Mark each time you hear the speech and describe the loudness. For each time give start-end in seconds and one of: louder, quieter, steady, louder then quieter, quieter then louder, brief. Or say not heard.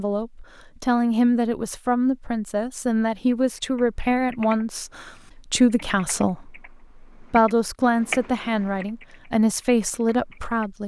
0.0-10.8 steady.